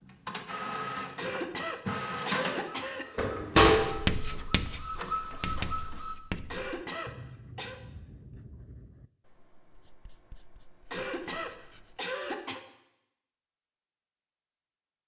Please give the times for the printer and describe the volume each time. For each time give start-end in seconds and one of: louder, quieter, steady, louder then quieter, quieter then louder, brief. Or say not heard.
0.1-6.2 louder then quieter.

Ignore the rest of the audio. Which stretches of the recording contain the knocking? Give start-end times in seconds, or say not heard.
not heard.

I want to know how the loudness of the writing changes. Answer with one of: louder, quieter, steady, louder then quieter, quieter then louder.
quieter.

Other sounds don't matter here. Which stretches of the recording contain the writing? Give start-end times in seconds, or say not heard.
3.6-12.0.